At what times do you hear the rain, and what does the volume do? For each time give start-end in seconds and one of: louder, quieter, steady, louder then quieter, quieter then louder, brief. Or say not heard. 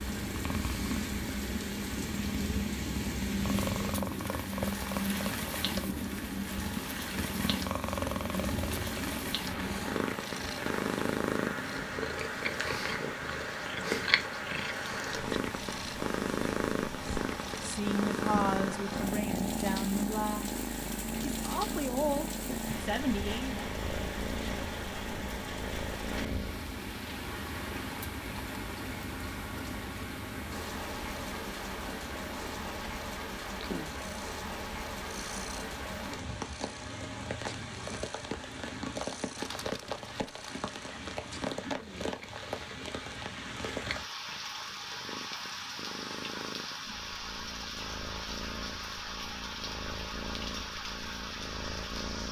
0.0-52.2 steady.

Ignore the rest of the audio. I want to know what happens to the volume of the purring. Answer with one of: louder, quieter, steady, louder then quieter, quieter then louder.
quieter.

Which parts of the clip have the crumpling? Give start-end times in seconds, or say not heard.
39.4-40.5.